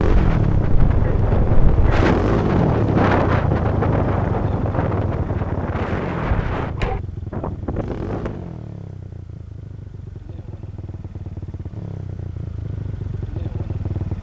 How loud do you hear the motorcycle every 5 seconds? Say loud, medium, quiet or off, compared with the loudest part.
loud, medium, medium.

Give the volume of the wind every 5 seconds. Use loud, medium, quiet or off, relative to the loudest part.
loud, medium, off.